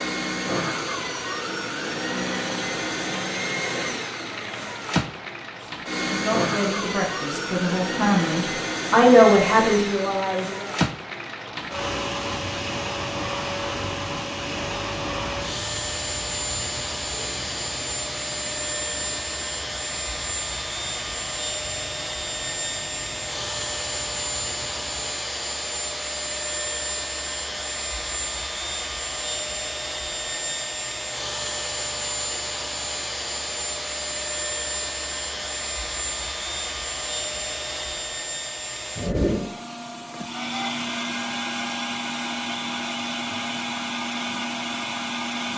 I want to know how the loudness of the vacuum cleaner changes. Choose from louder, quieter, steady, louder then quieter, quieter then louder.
steady.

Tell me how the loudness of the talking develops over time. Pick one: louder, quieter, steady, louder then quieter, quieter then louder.
louder then quieter.